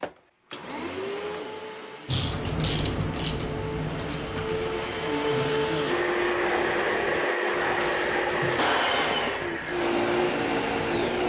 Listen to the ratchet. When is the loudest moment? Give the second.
3 s.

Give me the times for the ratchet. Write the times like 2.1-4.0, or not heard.
2.0-11.2.